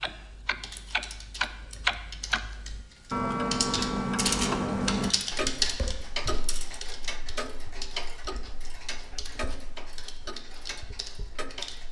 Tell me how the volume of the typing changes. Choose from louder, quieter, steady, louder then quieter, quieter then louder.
louder then quieter.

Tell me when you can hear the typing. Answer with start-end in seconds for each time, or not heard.
0.0-11.8.